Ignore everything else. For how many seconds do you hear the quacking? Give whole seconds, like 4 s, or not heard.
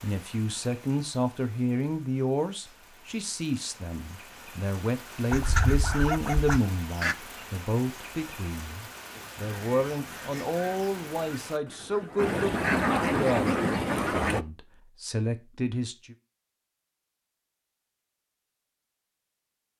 7 s.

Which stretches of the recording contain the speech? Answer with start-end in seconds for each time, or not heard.
0.0-16.1.